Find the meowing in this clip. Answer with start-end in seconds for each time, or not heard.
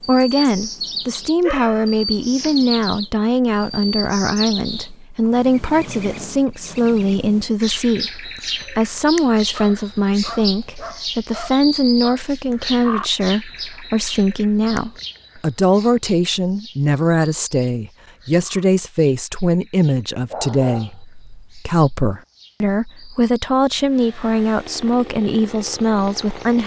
not heard.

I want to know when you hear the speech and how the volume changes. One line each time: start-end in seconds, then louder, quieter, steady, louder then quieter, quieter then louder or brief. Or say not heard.
0.1-26.6 steady.